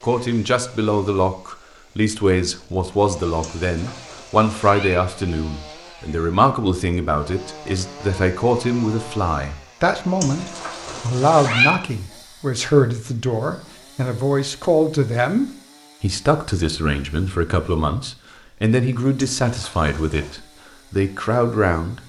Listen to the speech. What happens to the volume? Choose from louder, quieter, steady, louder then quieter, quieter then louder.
steady.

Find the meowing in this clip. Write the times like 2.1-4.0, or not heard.
3.4-5.0, 10.2-11.8, 19.2-20.4.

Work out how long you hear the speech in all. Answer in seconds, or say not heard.
22 s.